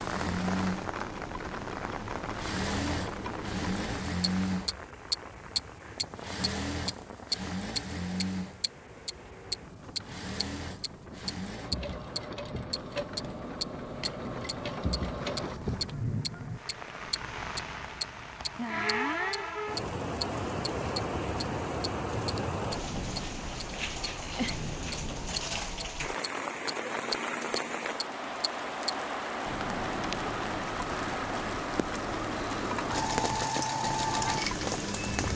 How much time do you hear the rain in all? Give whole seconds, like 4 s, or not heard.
35 s.